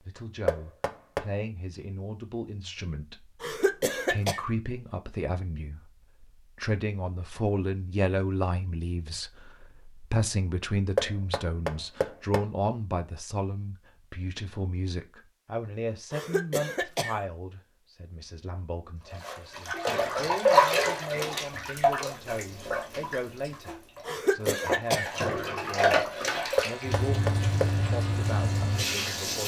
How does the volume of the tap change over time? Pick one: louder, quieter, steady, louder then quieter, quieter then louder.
quieter then louder.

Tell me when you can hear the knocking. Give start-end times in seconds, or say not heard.
0.5-1.2, 10.9-12.4, 26.6-27.7.